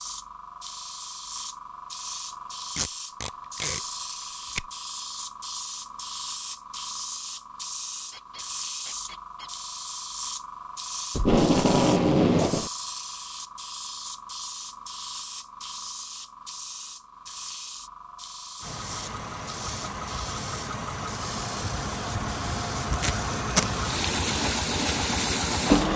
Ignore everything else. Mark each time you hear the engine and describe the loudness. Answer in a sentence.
You can hear the engine from 18.6 to 25.9 s, getting louder.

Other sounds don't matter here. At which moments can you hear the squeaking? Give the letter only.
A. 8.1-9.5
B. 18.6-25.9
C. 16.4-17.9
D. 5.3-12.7
A.